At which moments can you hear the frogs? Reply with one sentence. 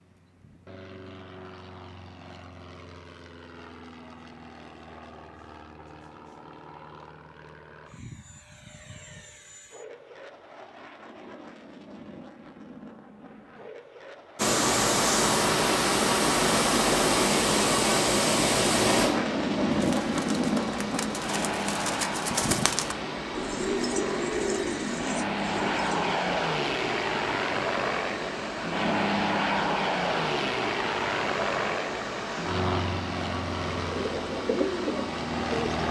You can't hear the frogs here.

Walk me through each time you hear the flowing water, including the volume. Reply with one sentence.
The flowing water can be heard from 14.3 to 35.8 s, getting quieter.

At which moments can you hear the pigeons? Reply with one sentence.
You can hear the pigeons from 19.7 to 26.0 s and from 33.9 to 35.8 s.